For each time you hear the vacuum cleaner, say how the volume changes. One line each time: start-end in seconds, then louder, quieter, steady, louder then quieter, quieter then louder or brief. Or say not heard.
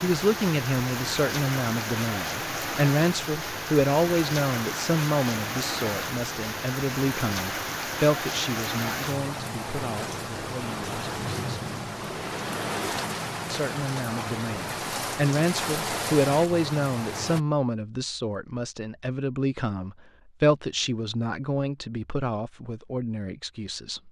not heard.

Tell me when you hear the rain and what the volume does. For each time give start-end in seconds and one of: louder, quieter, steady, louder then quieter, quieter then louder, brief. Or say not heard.
0.0-17.4 steady.